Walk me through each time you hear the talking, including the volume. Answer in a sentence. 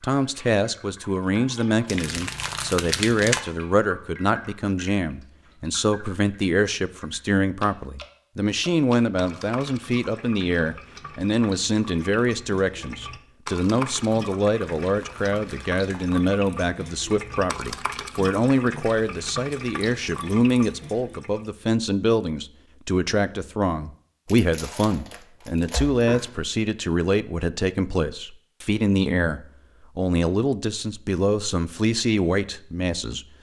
You can hear the talking from 0.0 to 33.2 s, at a steady volume.